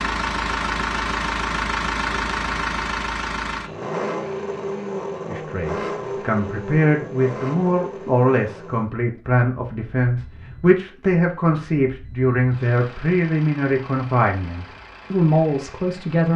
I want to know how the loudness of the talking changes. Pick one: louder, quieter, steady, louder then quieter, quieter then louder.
steady.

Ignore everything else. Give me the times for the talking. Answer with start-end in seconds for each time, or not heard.
5.2-16.3.